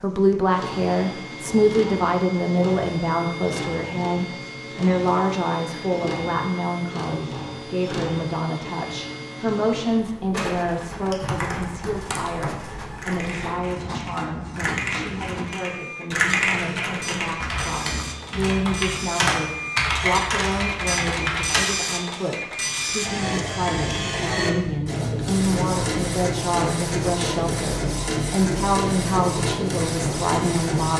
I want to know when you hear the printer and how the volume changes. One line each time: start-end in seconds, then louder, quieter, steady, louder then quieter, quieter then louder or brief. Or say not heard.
0.0-30.9 louder.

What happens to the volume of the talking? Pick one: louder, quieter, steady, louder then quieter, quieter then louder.
quieter then louder.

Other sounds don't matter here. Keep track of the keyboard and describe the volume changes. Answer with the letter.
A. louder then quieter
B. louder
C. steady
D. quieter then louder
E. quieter
B.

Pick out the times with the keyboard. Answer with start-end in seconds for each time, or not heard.
11.1-21.7.